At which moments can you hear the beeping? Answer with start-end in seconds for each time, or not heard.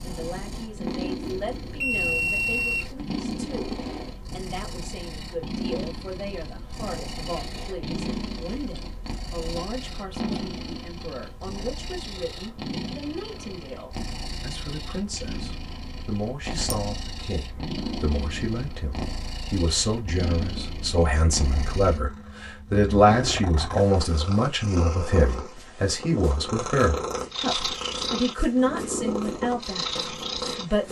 1.2-3.0.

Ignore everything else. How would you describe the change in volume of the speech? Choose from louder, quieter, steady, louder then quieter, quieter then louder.
louder.